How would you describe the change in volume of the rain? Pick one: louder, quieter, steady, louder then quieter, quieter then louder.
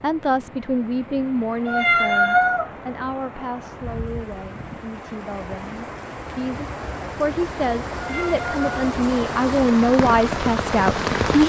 louder.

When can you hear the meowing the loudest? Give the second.
2 s.